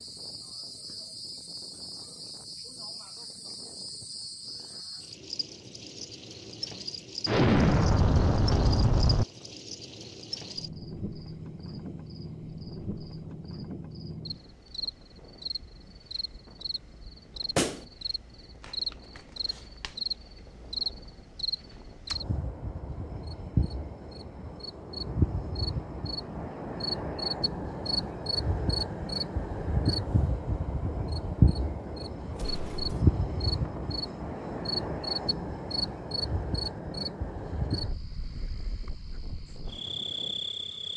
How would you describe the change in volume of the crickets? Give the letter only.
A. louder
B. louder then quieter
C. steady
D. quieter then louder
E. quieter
A.